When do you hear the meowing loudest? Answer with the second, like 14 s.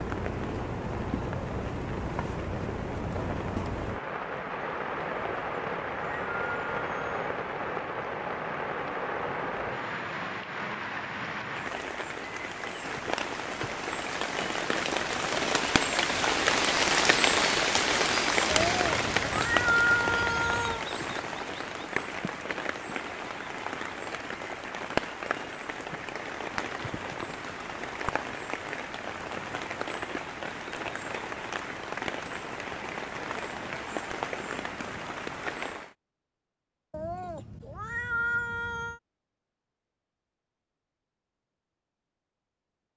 20 s.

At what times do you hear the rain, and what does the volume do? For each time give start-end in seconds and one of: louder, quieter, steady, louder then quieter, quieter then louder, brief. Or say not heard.
0.0-36.0 louder then quieter.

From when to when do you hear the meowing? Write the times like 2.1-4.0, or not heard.
5.1-7.1, 18.5-20.9, 36.9-39.0.